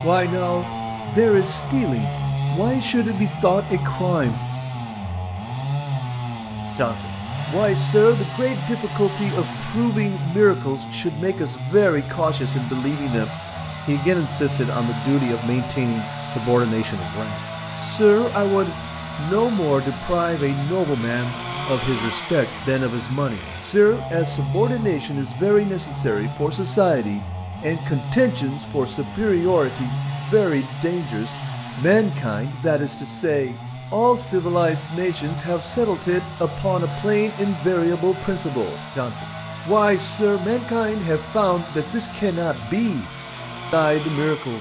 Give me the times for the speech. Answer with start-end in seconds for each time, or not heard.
0.0-4.4, 6.8-43.0, 43.7-44.5.